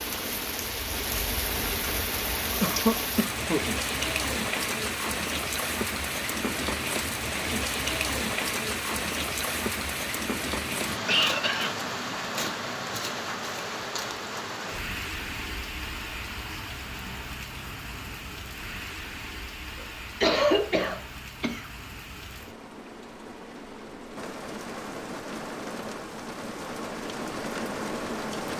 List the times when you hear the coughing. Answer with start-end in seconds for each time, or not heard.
2.6-3.6, 10.7-11.8, 20.2-21.6.